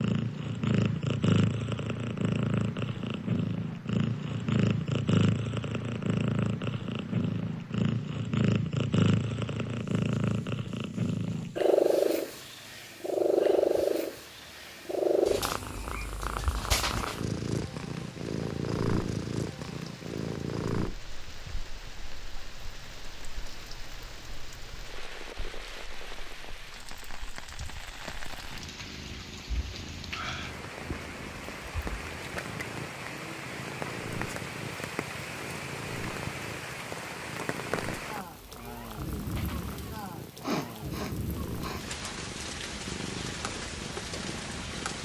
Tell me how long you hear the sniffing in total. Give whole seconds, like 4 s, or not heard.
2 s.